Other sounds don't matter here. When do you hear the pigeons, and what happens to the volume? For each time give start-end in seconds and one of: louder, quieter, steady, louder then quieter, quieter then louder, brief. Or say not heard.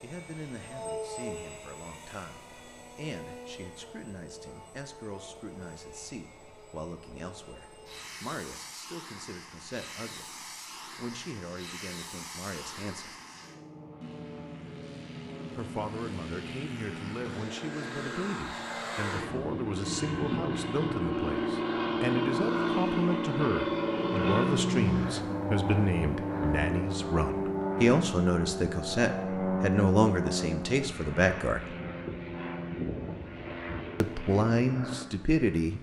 not heard.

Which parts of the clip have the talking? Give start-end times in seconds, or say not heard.
0.0-10.2, 10.8-13.1, 15.6-31.6, 34.0-35.7.